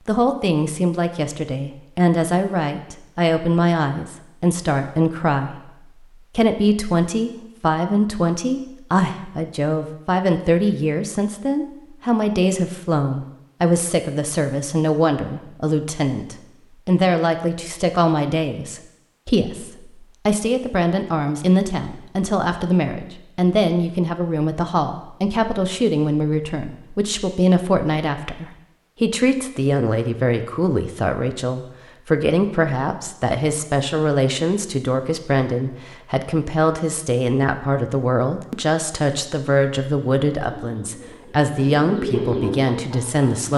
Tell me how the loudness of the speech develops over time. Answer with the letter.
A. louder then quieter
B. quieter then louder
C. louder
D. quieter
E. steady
E.